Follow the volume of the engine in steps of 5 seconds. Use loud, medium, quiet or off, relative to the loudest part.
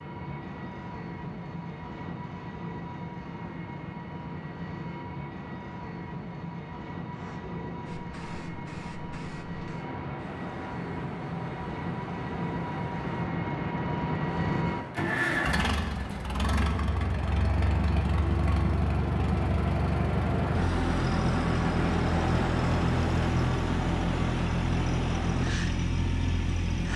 medium, medium, loud, loud, loud, loud.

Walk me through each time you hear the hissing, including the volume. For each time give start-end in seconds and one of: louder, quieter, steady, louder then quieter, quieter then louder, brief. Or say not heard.
7.1-26.9 louder.